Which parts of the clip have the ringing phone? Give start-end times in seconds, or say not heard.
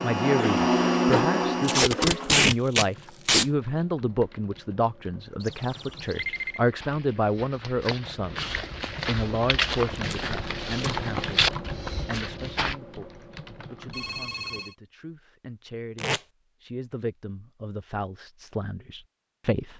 5.4-6.7, 13.9-14.8.